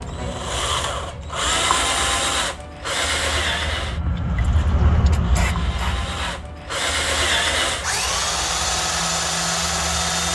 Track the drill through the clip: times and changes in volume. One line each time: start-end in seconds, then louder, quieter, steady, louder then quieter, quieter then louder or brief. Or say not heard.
0.0-10.3 quieter then louder.